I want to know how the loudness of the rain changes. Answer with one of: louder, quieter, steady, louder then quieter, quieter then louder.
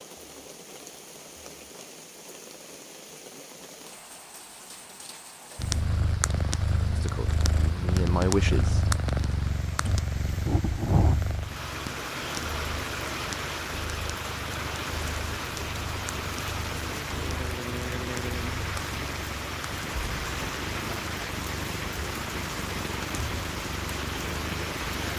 louder.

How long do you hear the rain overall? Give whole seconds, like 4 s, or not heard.
25 s.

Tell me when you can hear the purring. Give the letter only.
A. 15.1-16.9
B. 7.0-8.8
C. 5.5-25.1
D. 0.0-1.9
C.